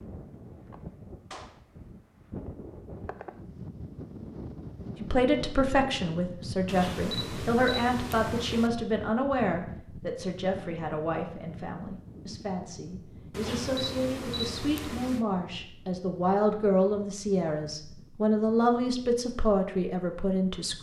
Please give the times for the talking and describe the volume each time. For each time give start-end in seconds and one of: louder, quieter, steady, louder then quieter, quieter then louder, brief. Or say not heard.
5.0-20.7 quieter then louder.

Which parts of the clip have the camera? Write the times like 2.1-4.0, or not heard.
6.7-8.7, 13.3-15.2.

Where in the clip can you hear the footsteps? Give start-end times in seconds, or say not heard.
not heard.